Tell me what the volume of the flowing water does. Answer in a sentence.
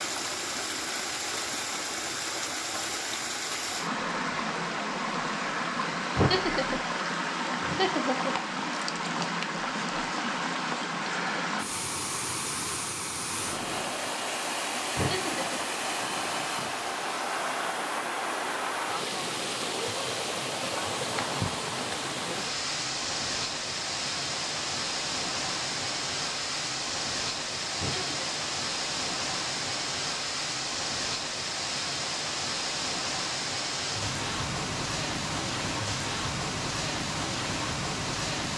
The volume of the flowing water stays about the same.